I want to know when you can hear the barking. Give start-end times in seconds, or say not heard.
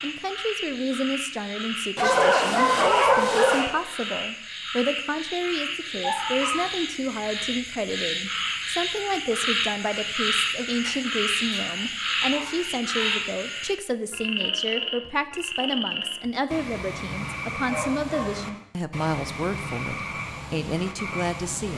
1.9-3.6, 6.0-6.7, 11.8-13.3, 17.6-18.4.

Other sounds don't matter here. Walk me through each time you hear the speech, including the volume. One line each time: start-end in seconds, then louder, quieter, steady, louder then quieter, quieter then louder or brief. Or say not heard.
0.0-21.7 steady.